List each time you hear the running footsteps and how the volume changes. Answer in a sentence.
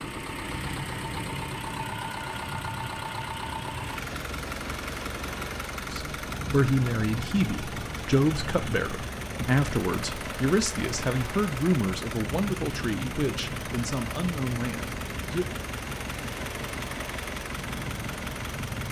You can't hear the running footsteps here.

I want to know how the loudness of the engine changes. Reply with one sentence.
The volume of the engine stays about the same.